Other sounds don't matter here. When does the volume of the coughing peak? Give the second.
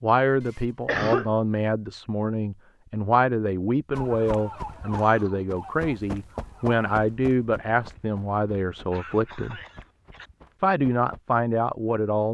1 s.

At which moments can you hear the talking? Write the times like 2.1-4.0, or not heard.
0.0-9.6, 10.6-12.2.